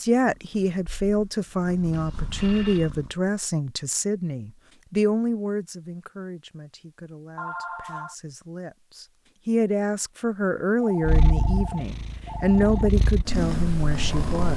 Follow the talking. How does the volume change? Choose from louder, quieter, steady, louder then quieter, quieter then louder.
quieter then louder.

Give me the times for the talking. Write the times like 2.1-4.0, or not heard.
0.0-14.5.